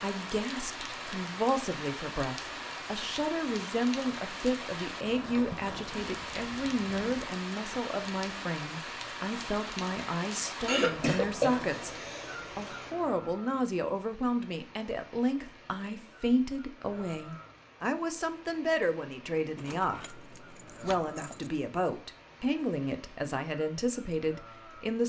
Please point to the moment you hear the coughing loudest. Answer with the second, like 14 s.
11 s.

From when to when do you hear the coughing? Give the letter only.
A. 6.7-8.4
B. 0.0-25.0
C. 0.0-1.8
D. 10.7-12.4
D.